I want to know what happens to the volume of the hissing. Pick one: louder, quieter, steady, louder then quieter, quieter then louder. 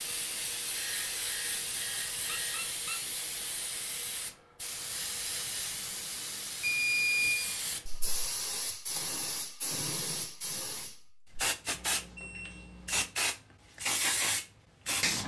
louder.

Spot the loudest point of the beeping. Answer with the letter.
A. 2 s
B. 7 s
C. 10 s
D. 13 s
B.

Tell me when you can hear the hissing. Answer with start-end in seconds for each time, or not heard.
0.0-15.2.